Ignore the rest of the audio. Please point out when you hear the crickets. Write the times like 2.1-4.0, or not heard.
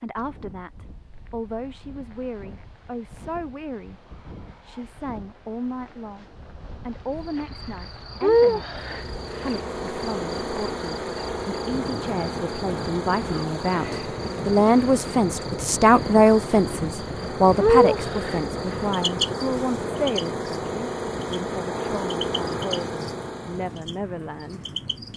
7.2-25.1.